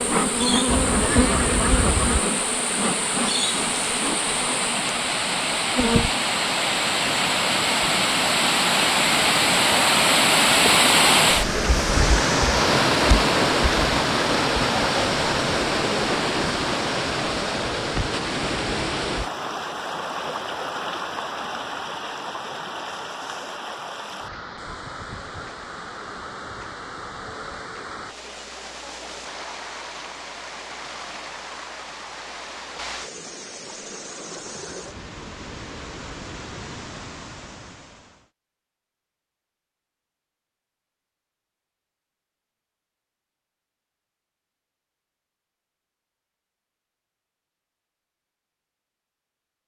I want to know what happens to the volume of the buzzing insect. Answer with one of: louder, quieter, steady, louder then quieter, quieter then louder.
quieter.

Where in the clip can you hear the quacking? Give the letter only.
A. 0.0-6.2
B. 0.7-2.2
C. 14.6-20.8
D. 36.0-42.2
B.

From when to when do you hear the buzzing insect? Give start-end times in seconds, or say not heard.
0.0-6.2.